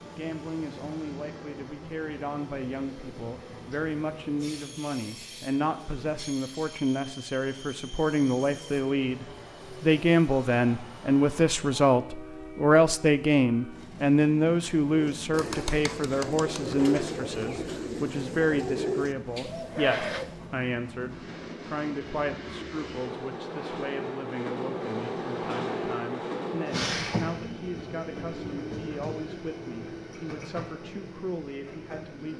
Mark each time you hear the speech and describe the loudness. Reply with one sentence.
You can hear the speech from 0.0 to 32.3 s, getting louder then quieter.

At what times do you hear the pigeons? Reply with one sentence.
The pigeons can be heard from 14.9 to 20.4 s.